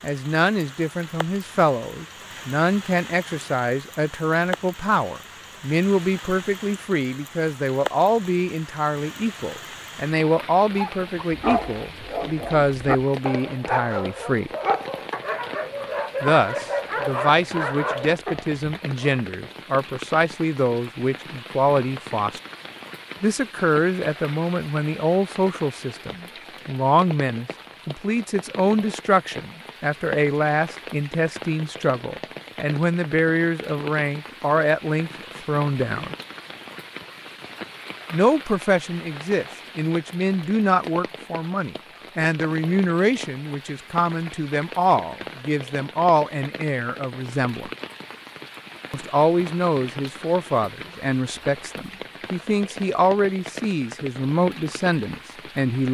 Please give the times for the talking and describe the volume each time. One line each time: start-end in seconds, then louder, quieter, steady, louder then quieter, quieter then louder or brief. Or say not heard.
0.0-14.5 steady
16.2-22.4 steady
23.2-36.1 steady
38.1-47.7 steady
48.9-55.8 steady.